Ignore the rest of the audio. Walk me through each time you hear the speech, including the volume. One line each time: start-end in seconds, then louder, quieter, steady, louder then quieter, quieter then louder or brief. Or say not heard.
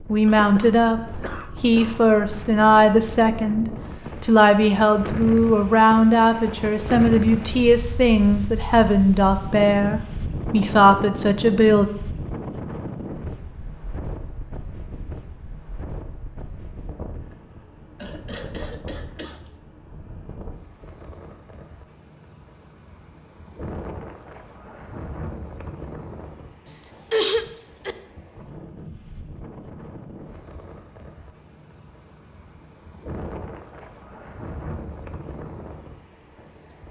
0.1-11.9 steady.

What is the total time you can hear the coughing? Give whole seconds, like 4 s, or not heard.
5 s.